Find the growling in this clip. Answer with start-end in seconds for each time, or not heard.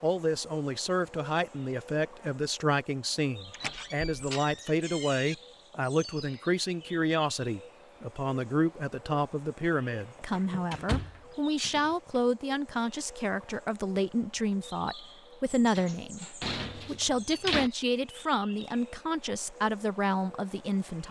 not heard.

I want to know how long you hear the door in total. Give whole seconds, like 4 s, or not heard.
6 s.